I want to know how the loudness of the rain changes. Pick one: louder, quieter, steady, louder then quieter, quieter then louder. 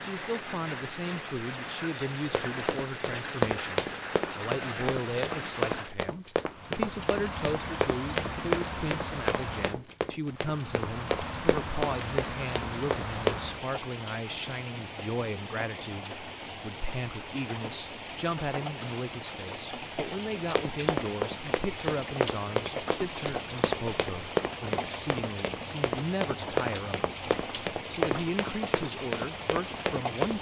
steady.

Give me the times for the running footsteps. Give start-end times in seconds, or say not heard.
2.2-13.4, 19.9-30.3.